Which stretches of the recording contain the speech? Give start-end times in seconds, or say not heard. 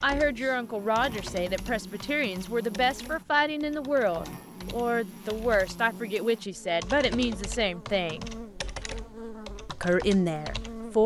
0.0-8.2, 9.7-11.0.